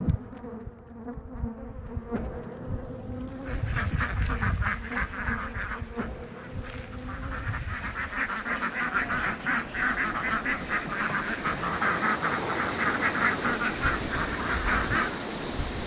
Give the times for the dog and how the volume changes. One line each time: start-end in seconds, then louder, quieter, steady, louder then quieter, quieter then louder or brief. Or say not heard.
not heard.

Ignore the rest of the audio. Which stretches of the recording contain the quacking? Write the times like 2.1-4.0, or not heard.
3.5-15.2.